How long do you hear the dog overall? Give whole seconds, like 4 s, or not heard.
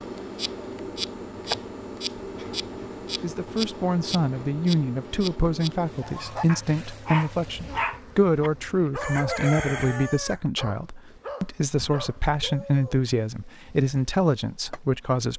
7 s.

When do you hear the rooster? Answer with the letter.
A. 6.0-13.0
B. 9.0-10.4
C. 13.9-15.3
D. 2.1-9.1
B.